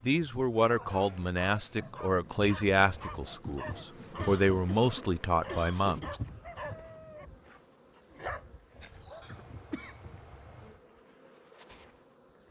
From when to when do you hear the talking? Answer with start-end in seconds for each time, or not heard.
0.0-6.2.